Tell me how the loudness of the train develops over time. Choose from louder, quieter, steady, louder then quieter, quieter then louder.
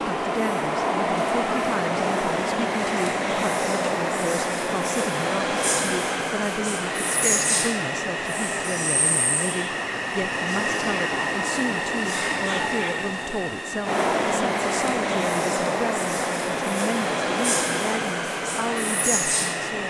steady.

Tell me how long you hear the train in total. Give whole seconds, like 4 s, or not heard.
20 s.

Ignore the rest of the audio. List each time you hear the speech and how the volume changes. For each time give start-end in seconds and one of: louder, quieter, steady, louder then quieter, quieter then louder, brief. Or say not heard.
0.0-19.8 steady.